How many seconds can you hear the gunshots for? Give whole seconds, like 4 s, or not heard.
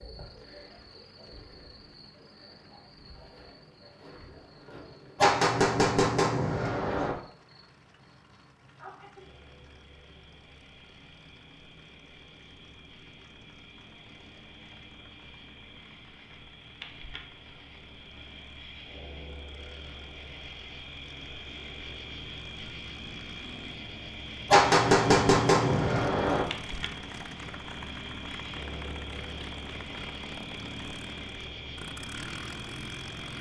4 s.